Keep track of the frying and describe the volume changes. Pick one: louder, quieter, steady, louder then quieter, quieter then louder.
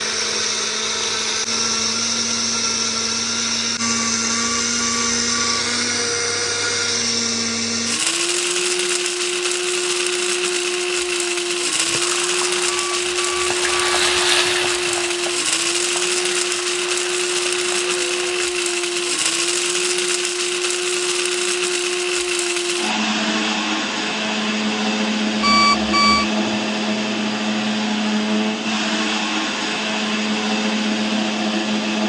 louder then quieter.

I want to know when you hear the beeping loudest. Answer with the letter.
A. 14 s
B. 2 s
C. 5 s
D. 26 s
D.